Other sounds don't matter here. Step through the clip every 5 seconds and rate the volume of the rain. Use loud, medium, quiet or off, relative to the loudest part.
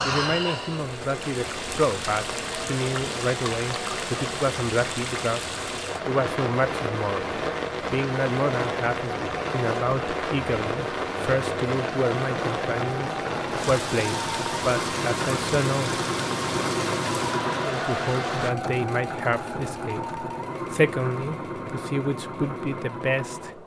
loud, loud, loud, loud, off.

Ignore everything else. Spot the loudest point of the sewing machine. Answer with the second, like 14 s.
17 s.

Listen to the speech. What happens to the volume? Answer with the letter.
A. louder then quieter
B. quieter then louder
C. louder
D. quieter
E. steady
E.